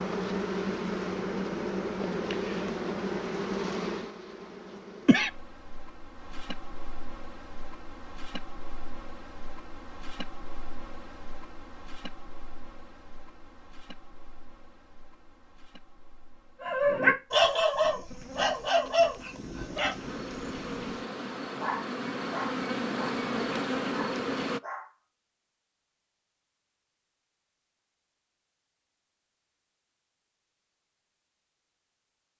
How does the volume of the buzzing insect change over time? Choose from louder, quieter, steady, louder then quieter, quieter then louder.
quieter then louder.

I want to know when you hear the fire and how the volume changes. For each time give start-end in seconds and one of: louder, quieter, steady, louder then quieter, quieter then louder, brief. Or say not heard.
not heard.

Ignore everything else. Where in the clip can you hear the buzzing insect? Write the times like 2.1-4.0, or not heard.
0.0-24.6.